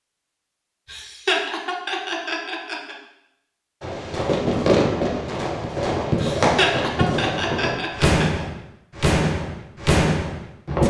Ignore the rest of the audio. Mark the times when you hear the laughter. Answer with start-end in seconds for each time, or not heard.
0.8-3.0, 6.2-8.4.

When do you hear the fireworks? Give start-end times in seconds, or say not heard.
3.8-10.8.